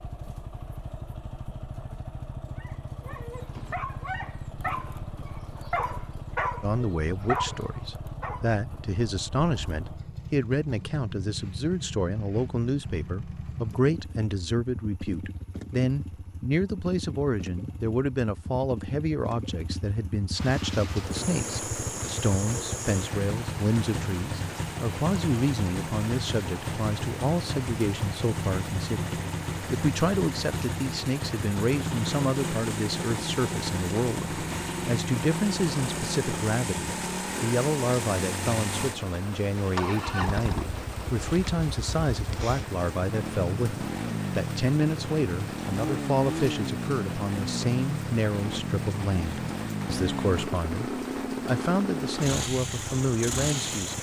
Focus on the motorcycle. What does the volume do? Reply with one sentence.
The volume of the motorcycle goes up.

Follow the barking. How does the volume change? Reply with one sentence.
The loudness of the barking goes up.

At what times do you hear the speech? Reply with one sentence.
You can hear the speech from 6.6 to 53.9 s.